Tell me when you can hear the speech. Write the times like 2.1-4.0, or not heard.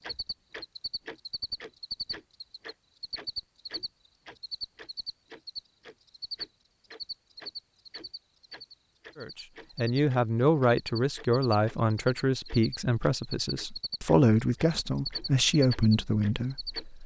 9.2-17.0.